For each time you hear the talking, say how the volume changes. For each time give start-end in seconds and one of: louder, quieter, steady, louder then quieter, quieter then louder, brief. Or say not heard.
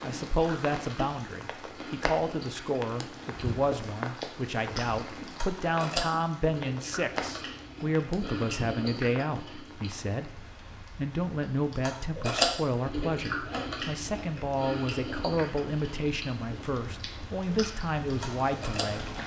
0.0-19.1 steady.